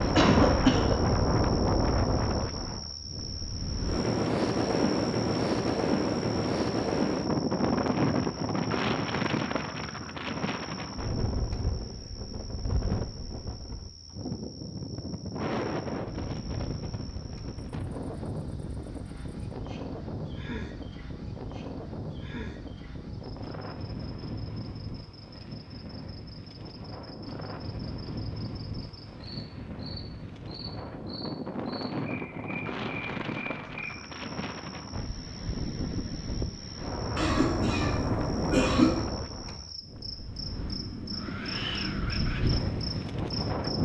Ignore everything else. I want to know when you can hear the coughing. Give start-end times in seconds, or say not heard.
0.1-0.9, 37.1-39.0.